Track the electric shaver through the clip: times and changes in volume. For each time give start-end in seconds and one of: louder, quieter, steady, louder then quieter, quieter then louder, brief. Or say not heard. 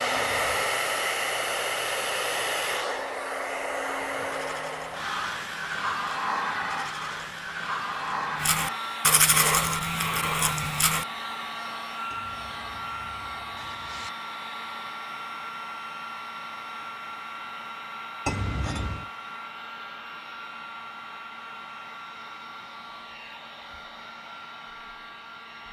not heard.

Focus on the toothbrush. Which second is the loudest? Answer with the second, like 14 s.
9 s.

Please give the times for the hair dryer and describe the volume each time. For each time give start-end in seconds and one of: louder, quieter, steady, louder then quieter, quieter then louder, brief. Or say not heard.
0.0-25.6 quieter.